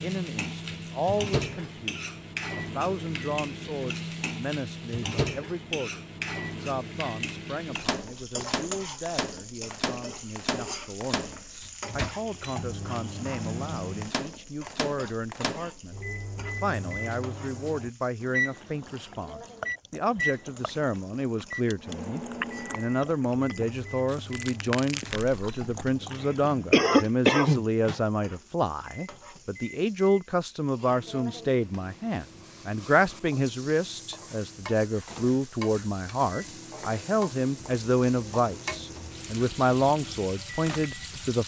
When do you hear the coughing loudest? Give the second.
27 s.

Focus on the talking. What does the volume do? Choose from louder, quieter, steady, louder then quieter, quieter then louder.
louder.